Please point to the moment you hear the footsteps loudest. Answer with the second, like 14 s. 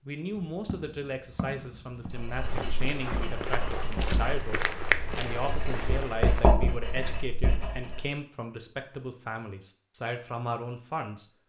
5 s.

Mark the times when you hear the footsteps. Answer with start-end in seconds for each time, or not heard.
0.5-6.5.